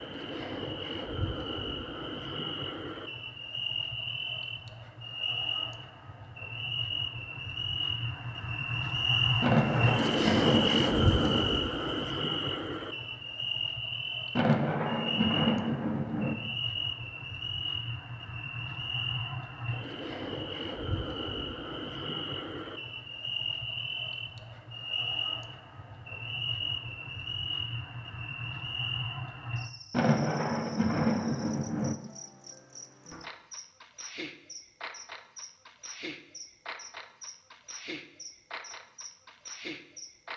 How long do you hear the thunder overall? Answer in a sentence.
The thunder can be heard for 6 seconds in total.